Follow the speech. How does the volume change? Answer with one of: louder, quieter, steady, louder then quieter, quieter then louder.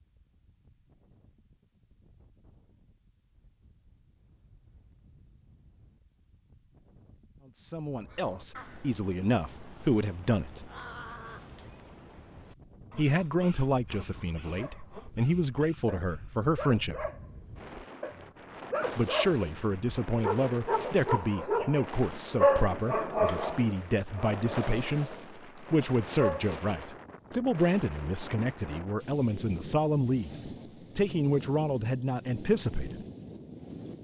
steady.